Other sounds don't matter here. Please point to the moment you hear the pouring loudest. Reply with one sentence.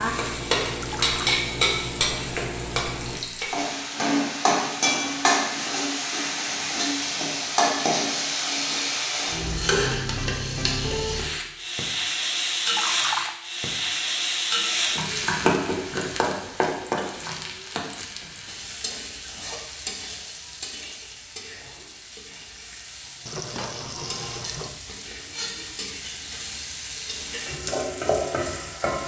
The loudest moment of the pouring is at 13 seconds.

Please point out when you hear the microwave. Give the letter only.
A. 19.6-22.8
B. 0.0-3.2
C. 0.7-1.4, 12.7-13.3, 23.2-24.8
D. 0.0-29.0
B.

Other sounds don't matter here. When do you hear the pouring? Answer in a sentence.
The pouring can be heard from 0.7 to 1.4 s, from 12.7 to 13.3 s and from 23.2 to 24.8 s.